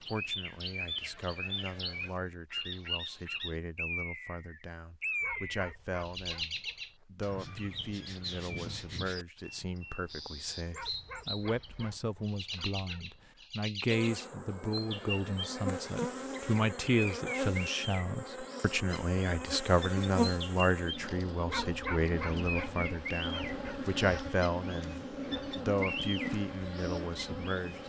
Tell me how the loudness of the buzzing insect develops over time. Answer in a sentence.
The volume of the buzzing insect stays about the same.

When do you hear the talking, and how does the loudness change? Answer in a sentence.
The talking can be heard from 0.0 to 27.8 s, getting louder.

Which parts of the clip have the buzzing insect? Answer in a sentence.
The buzzing insect can be heard from 13.9 to 27.8 s.